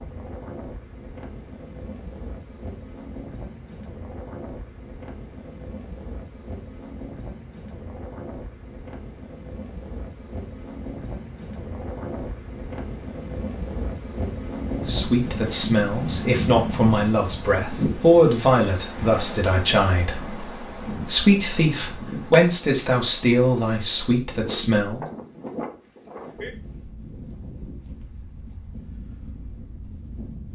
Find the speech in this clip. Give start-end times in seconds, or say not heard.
14.8-25.1.